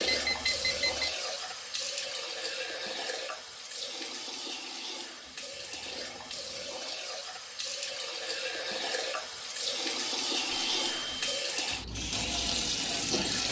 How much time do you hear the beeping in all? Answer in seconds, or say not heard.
3 s.